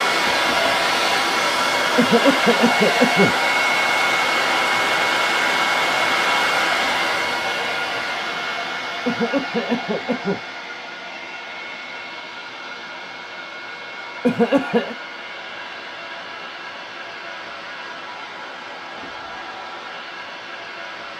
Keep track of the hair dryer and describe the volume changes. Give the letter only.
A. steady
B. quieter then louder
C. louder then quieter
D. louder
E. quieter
E.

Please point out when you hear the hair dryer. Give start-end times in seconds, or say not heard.
0.0-21.1.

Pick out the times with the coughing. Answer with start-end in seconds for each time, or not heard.
1.9-3.4, 9.1-10.4, 14.2-14.9.